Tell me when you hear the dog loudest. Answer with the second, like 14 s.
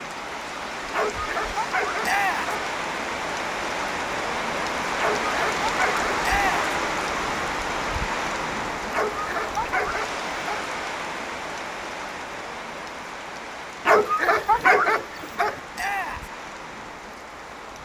15 s.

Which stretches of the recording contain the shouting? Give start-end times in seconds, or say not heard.
2.0-2.5, 6.2-6.7, 15.8-16.3.